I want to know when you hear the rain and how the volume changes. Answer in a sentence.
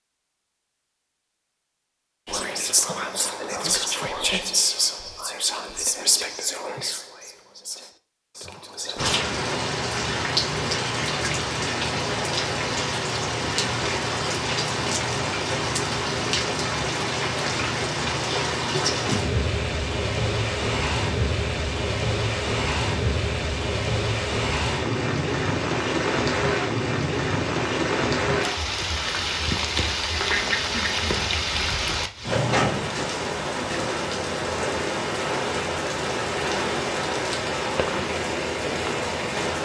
You can hear the rain from 8.9 to 39.5 s, at a steady volume.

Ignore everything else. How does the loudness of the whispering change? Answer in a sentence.
The loudness of the whispering goes down.